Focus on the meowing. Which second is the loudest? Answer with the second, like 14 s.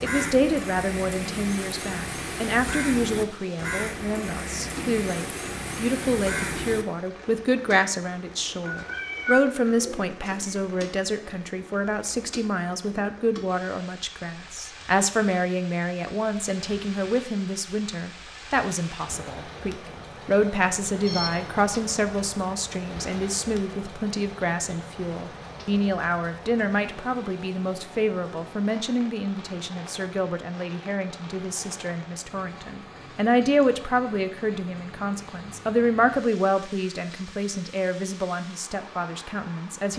9 s.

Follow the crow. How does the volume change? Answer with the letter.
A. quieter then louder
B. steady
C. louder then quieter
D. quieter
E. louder
B.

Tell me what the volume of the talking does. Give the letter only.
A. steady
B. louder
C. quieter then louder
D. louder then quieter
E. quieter
A.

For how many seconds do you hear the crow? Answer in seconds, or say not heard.
7 s.